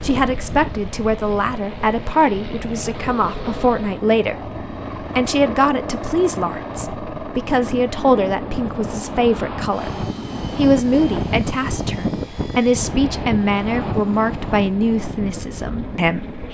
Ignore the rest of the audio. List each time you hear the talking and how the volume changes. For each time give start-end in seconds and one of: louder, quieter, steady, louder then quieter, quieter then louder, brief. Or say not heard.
0.0-16.4 steady.